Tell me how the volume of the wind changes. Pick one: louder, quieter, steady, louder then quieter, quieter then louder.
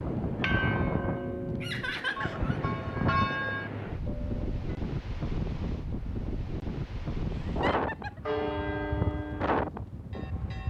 steady.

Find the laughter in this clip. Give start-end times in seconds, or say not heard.
1.6-2.6, 7.3-8.2.